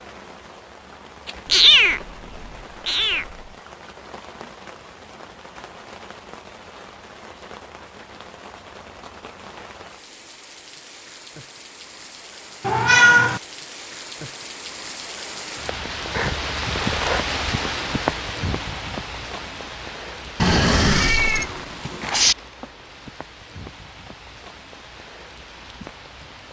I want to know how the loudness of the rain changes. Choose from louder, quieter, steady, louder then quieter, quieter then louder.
louder then quieter.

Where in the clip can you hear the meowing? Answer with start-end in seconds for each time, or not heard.
1.4-3.2, 12.6-13.4, 20.4-22.4.